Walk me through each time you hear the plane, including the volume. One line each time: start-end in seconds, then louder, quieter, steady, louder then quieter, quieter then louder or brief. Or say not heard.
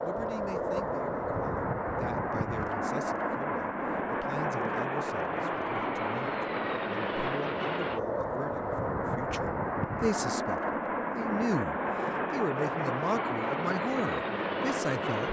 0.0-15.2 steady.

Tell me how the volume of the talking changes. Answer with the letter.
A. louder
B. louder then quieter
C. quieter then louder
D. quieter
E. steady
A.